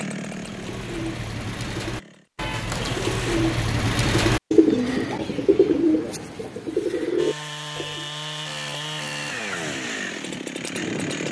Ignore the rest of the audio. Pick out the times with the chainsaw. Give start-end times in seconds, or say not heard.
0.0-3.4, 7.2-11.2.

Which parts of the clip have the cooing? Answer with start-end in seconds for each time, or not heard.
0.2-8.1.